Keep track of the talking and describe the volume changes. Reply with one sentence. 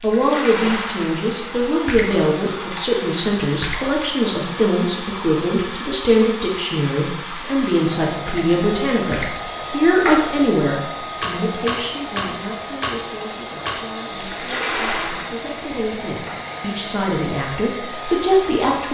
The volume of the talking goes down, then up.